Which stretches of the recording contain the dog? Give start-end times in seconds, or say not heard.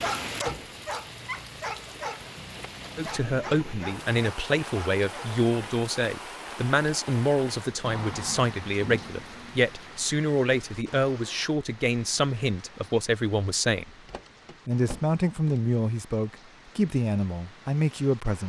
0.0-5.4.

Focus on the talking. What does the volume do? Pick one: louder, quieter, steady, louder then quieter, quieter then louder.
steady.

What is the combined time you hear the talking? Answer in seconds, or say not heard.
15 s.